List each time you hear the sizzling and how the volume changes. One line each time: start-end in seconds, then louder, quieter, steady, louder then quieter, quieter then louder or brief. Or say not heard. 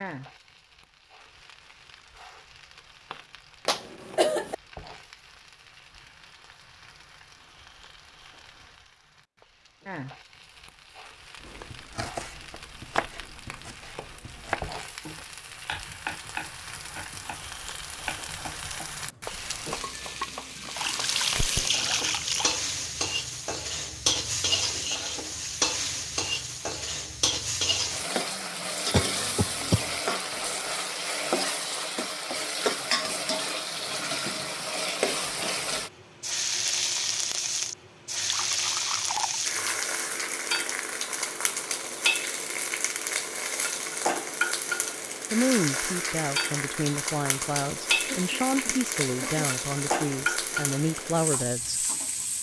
0.0-52.3 louder.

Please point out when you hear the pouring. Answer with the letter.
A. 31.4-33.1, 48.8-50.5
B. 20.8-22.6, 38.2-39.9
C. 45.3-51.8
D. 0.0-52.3
B.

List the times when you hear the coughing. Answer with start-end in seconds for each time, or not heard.
3.6-4.5, 28.9-29.9, 48.0-49.5.